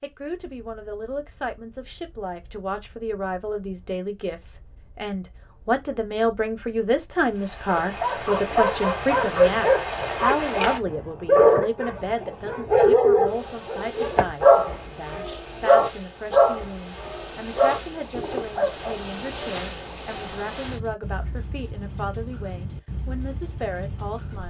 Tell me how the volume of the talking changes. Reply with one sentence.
The loudness of the talking goes up, then down.